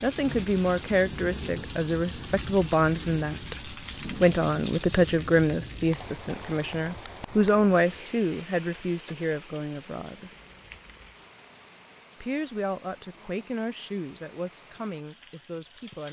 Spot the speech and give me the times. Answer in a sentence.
You can hear the speech from 0.0 to 3.5 s, from 4.2 to 10.3 s and from 12.2 to 16.0 s.